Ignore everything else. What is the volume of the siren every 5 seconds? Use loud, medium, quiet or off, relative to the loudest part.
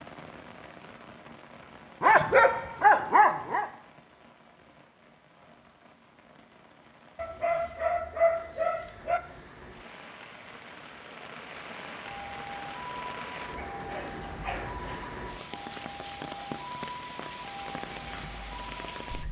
off, off, loud, loud.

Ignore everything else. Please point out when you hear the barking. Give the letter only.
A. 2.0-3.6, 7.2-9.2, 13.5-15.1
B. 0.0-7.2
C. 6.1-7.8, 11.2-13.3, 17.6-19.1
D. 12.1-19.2
A.